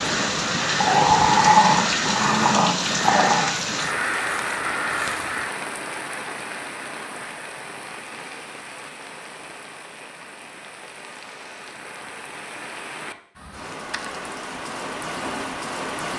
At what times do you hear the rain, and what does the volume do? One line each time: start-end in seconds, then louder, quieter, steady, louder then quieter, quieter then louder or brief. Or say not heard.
0.0-16.1 quieter then louder.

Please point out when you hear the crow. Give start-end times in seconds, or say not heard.
0.0-5.5.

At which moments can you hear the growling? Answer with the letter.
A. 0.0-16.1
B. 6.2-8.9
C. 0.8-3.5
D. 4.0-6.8
C.